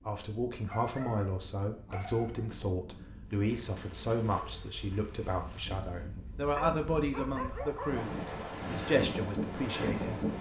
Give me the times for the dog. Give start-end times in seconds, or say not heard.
0.7-2.5, 6.7-8.1.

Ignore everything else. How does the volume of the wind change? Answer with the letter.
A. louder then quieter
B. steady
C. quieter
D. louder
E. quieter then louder
D.